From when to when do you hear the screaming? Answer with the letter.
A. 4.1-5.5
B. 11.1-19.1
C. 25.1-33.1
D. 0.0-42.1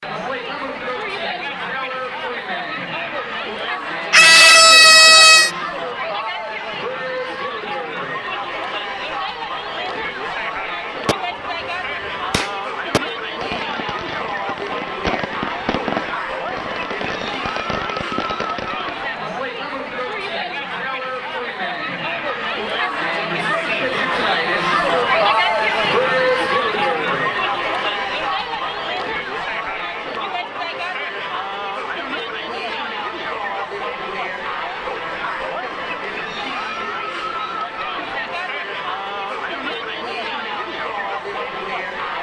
A.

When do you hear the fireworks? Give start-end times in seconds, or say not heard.
11.1-19.1.